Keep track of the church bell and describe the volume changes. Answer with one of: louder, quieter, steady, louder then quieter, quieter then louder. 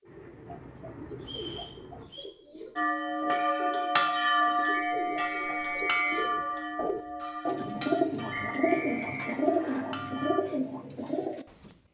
quieter.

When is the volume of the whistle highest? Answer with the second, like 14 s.
6 s.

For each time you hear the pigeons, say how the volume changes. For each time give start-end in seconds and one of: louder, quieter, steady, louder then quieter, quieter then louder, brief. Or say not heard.
0.0-11.8 louder.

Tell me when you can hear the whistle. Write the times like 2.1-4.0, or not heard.
1.2-2.3, 4.7-6.2, 8.3-9.8.